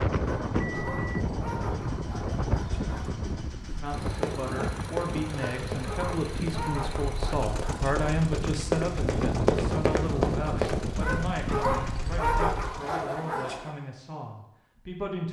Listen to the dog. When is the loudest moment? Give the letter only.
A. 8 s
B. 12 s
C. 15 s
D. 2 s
B.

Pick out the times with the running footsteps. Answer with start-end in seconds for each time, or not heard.
3.6-10.8.